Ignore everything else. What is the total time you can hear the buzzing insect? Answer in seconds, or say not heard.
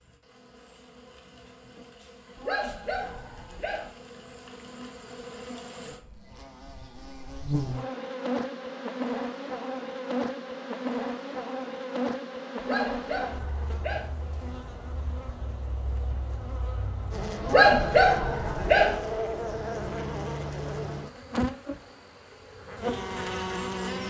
24 s.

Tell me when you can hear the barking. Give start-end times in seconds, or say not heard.
2.4-3.9, 12.6-14.1, 17.4-19.0.